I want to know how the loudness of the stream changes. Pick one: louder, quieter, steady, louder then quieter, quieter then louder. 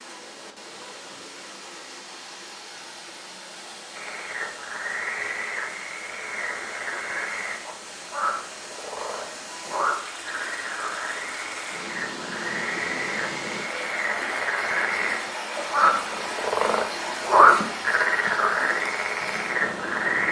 louder.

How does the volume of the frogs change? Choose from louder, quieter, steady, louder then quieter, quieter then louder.
louder.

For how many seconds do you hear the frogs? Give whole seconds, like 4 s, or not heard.
16 s.